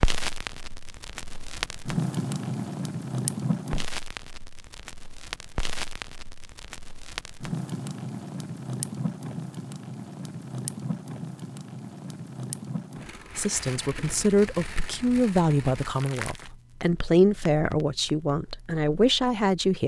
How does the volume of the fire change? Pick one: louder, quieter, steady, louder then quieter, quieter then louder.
quieter.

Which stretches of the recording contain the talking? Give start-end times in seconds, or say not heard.
13.3-19.8.